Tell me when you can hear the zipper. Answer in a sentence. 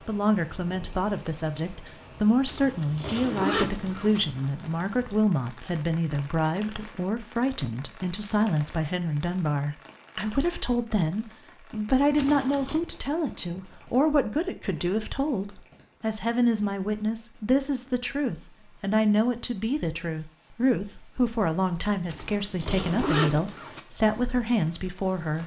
The zipper can be heard from 2.5 to 4.2 s, from 12.2 to 12.8 s and from 22.1 to 23.8 s.